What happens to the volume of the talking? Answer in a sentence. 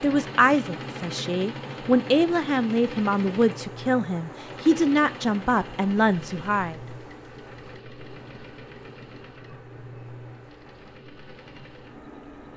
The volume of the talking stays about the same.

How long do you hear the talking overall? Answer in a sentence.
You can hear the talking for 7 seconds altogether.